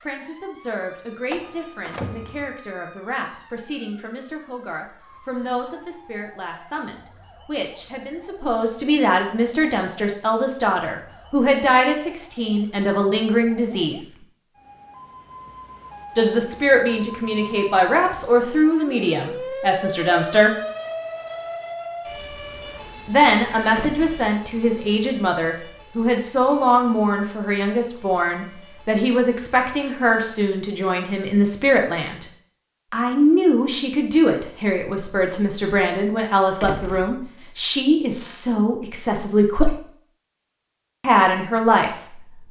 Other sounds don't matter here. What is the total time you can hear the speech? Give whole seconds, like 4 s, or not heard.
36 s.